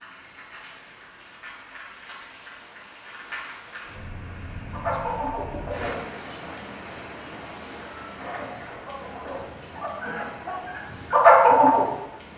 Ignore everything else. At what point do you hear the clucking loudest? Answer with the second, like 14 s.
11 s.